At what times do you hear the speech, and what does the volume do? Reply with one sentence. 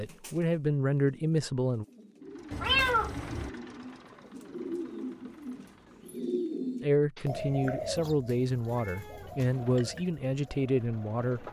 You can hear the speech briefly from 0.0 to 1.9 s; and from 6.8 to 11.4 s, at a steady volume.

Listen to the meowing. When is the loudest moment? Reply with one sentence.
The volume of the meowing peaks at 3 seconds.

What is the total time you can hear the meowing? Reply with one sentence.
You can hear the meowing for 3 seconds altogether.